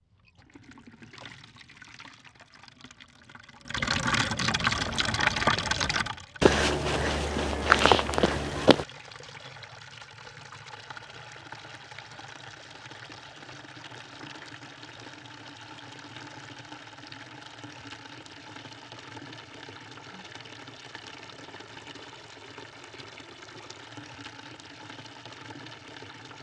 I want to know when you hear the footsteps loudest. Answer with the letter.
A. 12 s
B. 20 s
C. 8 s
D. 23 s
C.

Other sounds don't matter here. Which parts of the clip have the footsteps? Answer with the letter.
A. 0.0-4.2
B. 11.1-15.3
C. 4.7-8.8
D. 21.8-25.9
C.